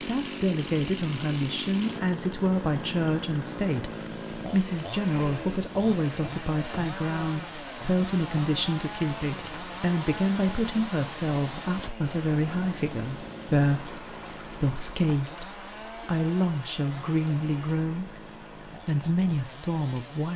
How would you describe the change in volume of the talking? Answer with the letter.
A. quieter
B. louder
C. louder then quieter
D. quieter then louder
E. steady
E.